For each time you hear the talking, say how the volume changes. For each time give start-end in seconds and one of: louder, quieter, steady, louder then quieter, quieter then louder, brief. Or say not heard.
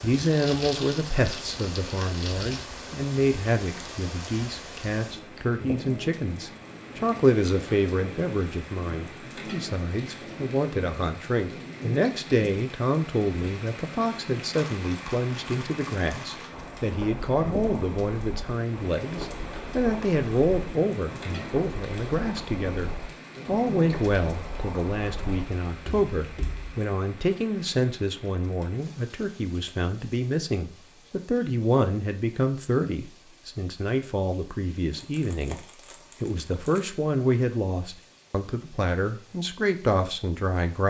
0.0-40.8 steady.